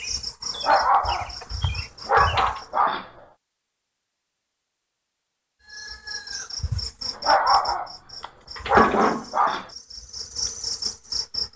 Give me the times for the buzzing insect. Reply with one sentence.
You can hear the buzzing insect from 0.0 to 2.6 s and from 5.7 to 11.5 s.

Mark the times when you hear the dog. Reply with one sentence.
You can hear the dog from 0.6 to 3.0 s and from 7.2 to 9.7 s.